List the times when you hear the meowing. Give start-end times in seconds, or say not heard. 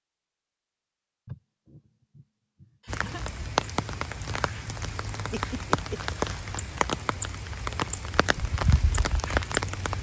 not heard.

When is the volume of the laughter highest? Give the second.
6 s.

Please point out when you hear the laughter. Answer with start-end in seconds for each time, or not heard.
1.2-3.2, 5.1-6.0.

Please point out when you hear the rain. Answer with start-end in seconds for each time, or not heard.
2.9-9.9.